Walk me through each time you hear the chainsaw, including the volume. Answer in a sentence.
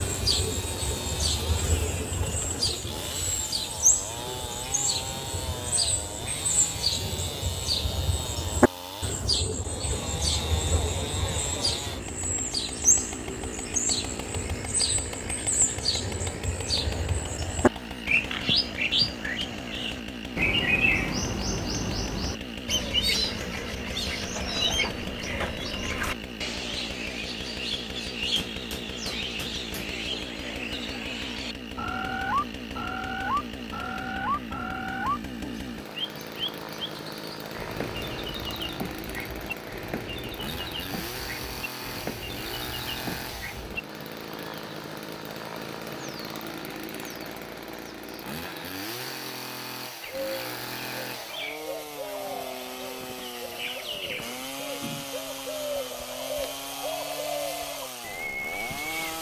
You can hear the chainsaw from 0.0 to 59.1 s, at a steady volume.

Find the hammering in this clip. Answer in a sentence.
The hammering can be heard from 28.4 to 30.0 s.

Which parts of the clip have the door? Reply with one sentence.
You can't hear the door here.